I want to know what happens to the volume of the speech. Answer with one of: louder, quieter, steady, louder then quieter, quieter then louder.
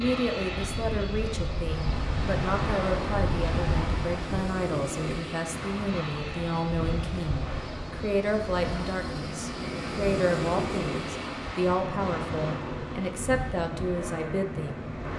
steady.